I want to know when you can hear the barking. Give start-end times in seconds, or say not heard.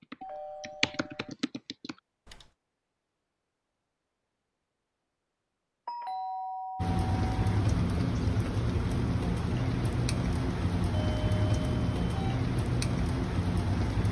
not heard.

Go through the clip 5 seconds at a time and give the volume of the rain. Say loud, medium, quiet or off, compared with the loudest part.
off, loud, loud.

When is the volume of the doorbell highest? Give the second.
6 s.